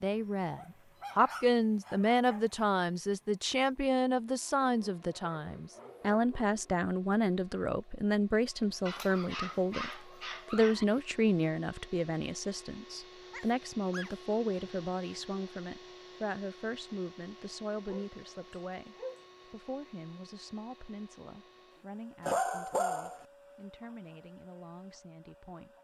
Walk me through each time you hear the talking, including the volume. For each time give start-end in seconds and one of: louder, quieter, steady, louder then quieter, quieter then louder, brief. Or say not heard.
0.0-25.7 quieter.